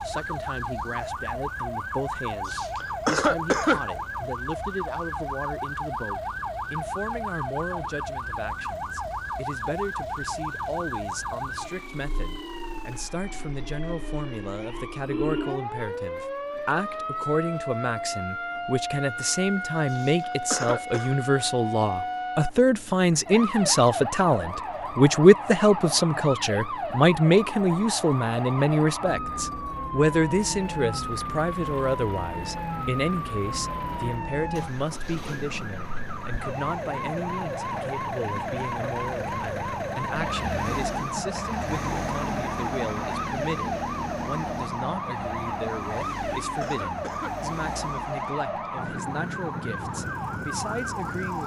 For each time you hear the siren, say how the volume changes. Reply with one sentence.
You can hear the siren from 0.0 to 51.4 s, at a steady volume.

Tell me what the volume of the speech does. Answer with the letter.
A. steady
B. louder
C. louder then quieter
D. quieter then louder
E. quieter
C.